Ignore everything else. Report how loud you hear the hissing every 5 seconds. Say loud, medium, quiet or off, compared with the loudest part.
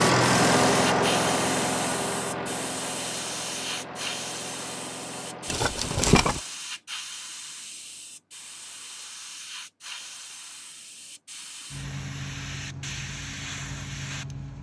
loud, medium, loud.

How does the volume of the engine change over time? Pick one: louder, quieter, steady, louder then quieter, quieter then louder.
quieter.